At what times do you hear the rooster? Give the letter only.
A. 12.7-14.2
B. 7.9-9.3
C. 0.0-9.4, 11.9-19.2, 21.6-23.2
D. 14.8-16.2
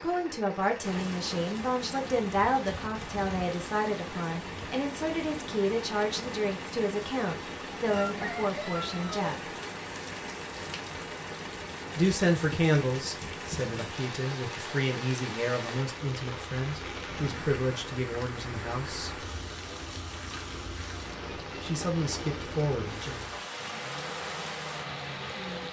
B.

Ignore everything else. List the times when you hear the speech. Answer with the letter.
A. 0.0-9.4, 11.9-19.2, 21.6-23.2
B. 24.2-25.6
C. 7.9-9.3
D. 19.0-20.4
A.